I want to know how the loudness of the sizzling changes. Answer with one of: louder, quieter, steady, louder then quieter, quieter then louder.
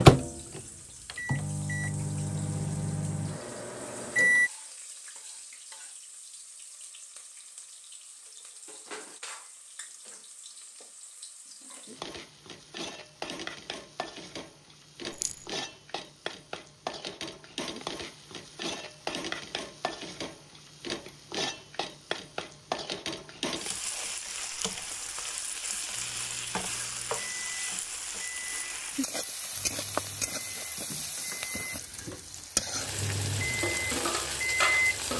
louder.